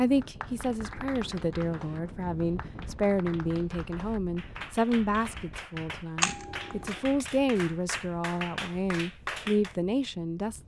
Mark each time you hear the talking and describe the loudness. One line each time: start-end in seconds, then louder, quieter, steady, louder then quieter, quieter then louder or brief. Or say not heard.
0.0-10.6 steady.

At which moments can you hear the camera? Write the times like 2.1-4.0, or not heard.
6.2-7.0.